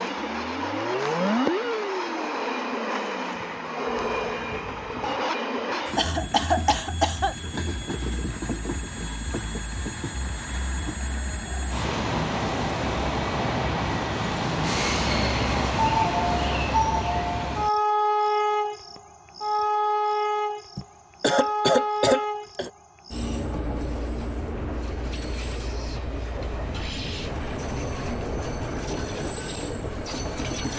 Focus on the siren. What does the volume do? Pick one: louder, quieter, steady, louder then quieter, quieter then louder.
quieter.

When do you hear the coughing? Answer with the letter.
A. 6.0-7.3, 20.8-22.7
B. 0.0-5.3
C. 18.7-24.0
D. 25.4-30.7
A.